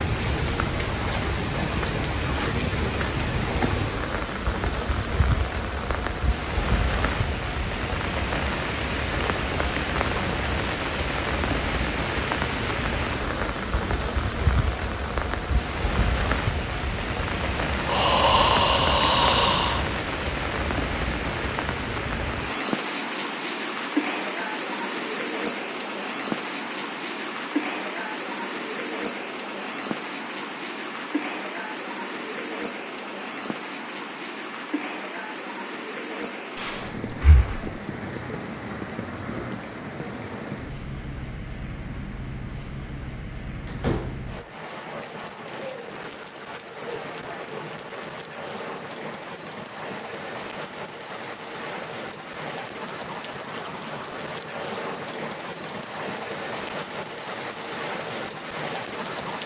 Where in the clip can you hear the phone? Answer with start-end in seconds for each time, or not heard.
not heard.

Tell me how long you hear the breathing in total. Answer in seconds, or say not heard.
3 s.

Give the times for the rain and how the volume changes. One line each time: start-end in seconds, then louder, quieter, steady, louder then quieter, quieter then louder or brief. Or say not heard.
0.0-59.4 quieter.